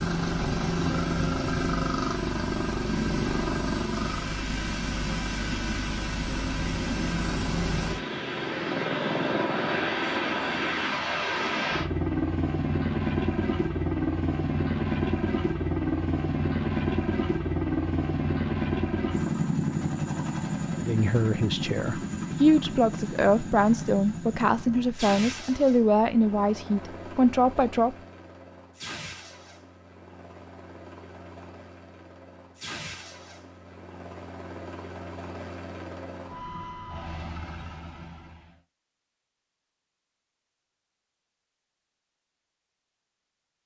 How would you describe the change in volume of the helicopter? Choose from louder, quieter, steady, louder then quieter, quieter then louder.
quieter.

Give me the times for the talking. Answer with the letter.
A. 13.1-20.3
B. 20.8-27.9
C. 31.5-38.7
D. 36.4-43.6
B.